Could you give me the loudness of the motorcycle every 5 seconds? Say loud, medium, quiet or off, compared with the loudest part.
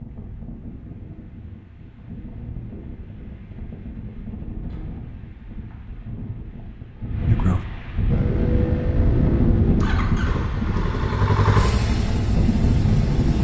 off, loud, loud.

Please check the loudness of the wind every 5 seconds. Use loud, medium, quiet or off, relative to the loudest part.
quiet, loud, loud.